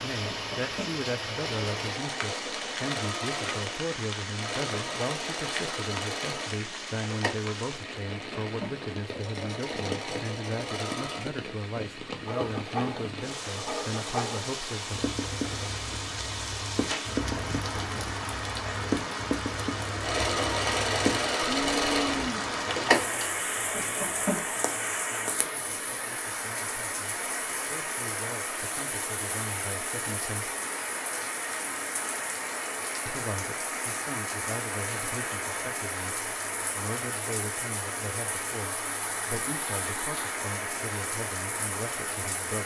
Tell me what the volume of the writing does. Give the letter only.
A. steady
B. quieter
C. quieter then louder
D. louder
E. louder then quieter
A.